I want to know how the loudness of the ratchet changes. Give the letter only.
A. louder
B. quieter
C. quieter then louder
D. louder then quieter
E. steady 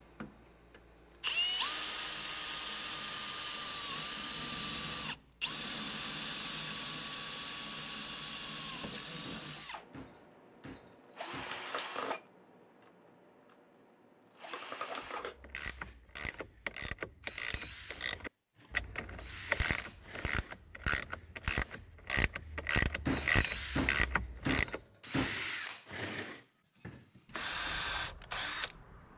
A.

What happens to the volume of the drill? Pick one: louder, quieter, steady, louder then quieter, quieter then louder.
quieter then louder.